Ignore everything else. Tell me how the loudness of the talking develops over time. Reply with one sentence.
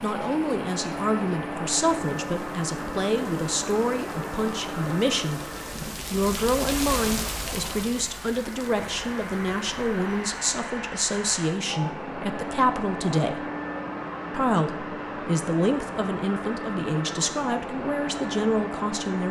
The loudness of the talking stays about the same.